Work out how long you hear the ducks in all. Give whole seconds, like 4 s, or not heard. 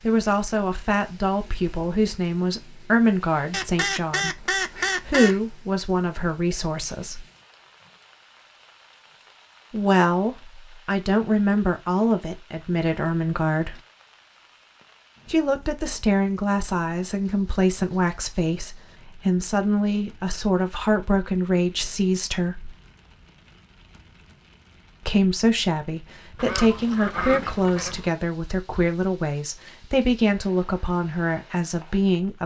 4 s.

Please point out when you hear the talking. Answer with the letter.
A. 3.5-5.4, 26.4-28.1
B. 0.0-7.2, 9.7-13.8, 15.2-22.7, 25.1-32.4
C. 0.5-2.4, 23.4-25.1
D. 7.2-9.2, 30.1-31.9
B.